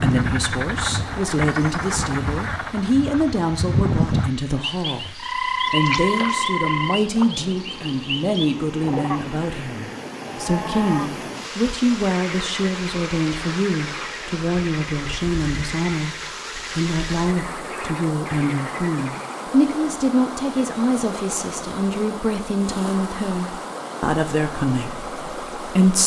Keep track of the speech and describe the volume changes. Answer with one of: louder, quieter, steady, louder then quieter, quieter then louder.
steady.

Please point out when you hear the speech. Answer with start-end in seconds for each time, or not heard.
0.0-26.0.